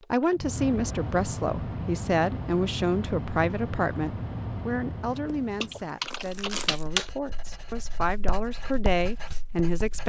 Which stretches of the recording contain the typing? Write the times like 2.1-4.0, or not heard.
5.6-7.1.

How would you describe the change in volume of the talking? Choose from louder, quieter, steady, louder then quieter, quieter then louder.
quieter then louder.